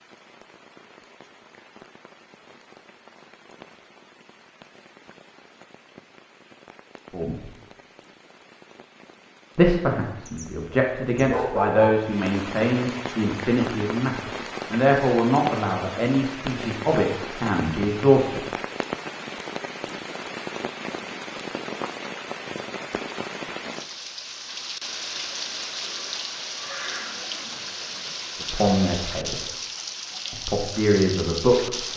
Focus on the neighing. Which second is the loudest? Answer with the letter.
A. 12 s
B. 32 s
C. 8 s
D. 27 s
D.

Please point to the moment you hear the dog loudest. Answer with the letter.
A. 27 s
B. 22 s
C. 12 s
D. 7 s
C.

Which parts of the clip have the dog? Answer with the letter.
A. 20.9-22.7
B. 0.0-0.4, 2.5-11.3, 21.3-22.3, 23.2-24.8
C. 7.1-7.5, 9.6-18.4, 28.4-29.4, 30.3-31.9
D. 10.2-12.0
D.